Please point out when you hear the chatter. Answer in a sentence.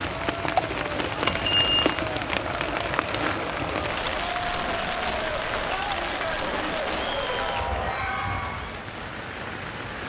You can hear the chatter from 0.0 to 8.8 s.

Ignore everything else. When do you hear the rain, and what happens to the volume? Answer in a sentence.
The rain can be heard from 0.0 to 10.0 s, getting quieter.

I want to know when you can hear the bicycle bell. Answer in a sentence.
The bicycle bell can be heard from 1.2 to 1.9 s.